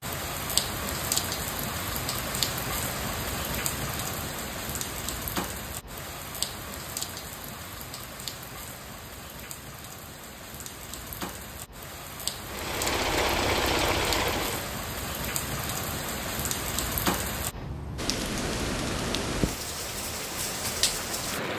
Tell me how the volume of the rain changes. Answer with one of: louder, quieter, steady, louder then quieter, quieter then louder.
quieter then louder.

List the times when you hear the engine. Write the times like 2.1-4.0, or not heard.
12.4-14.8.